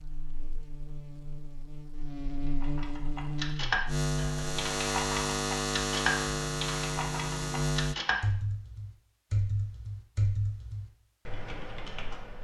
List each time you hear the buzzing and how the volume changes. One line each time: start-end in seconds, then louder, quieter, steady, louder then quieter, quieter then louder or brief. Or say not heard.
0.0-8.0 louder.